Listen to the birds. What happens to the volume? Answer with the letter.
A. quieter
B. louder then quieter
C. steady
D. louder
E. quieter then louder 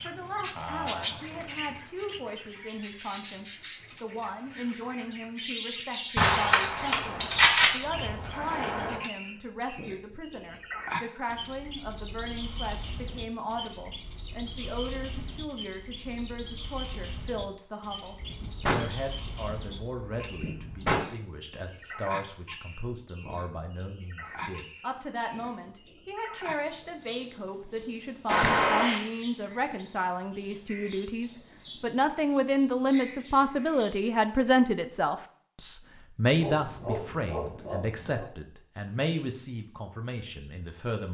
A.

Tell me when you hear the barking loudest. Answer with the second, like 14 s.
37 s.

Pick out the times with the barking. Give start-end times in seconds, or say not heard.
36.4-38.3.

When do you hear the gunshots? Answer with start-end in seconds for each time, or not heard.
6.2-9.0, 18.2-21.1, 28.2-29.1.